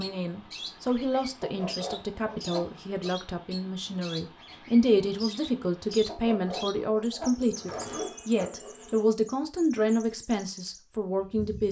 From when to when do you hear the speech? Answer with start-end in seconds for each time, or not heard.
0.0-11.6.